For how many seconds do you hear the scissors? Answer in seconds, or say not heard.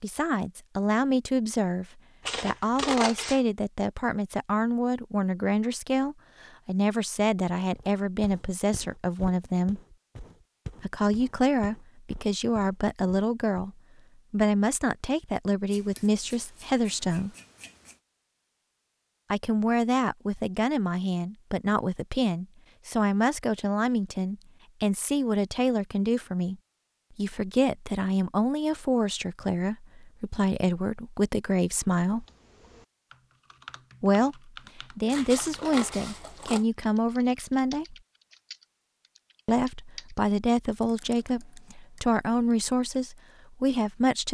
5 s.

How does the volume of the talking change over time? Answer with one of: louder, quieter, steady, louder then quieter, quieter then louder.
steady.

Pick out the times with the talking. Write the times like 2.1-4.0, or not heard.
0.0-9.8, 10.8-17.3, 19.3-26.6, 27.1-32.2, 34.0-38.0, 39.5-44.2.